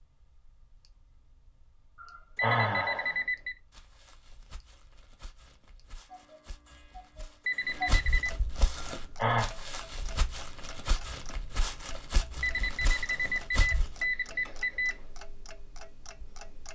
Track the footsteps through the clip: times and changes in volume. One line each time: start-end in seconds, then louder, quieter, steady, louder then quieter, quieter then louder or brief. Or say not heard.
3.4-14.0 louder.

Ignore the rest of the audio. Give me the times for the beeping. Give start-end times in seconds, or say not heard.
2.4-3.5, 7.5-8.3, 12.4-14.9.